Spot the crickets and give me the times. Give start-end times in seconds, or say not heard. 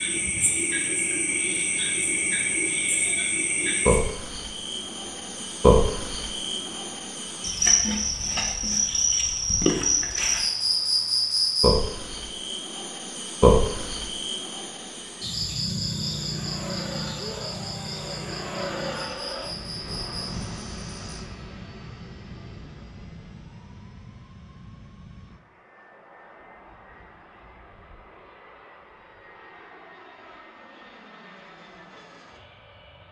0.0-21.2.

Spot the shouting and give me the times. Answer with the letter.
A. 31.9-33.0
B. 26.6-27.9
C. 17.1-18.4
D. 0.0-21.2
C.